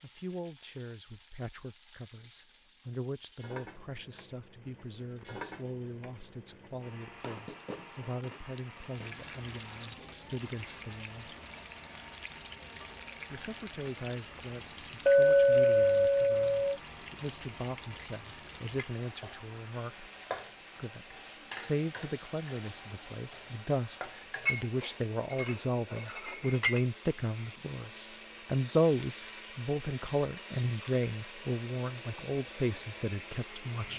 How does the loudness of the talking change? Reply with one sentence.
The loudness of the talking goes up.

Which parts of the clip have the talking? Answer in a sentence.
The talking can be heard from 0.0 to 11.3 s, from 13.3 to 20.1 s and from 20.8 to 33.9 s.